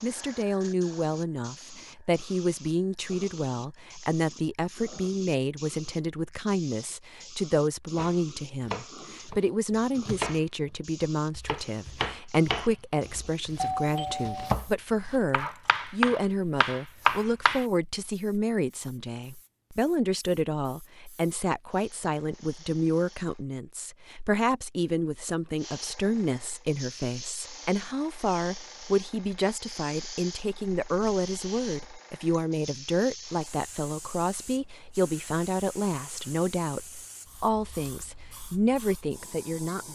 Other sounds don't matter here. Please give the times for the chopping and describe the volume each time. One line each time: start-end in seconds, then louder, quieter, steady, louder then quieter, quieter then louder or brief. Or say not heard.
8.0-17.6 louder.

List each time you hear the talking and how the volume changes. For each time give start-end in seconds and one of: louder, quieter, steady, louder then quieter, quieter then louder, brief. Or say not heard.
0.0-39.8 steady.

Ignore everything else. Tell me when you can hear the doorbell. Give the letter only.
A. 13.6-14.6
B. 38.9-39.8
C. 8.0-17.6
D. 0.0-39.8
A.